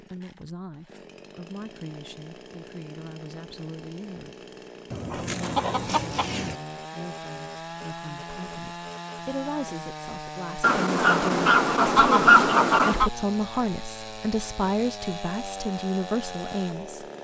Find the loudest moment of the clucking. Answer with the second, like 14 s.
12 s.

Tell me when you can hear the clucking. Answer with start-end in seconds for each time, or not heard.
4.9-6.5, 10.6-13.1.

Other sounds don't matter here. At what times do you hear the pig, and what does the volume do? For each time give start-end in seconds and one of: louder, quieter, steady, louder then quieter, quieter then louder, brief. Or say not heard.
not heard.